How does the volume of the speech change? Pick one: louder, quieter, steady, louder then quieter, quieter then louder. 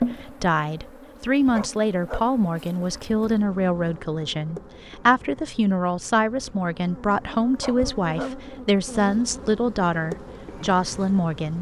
steady.